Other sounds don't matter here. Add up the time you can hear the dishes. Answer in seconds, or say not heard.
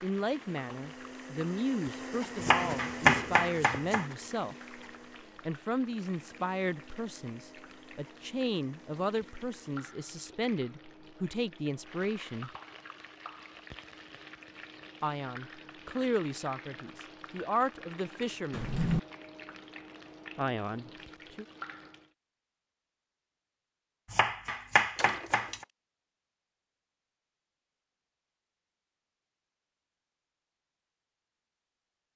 not heard.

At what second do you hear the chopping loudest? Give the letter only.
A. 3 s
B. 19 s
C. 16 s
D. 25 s
A.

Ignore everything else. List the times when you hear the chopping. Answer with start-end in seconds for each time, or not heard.
2.4-4.0, 24.1-25.6.